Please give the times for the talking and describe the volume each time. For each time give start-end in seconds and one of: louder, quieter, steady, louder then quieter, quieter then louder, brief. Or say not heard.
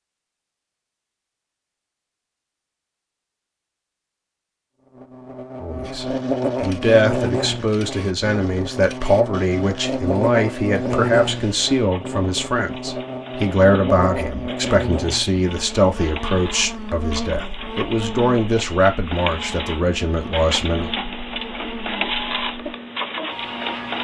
5.6-20.9 steady.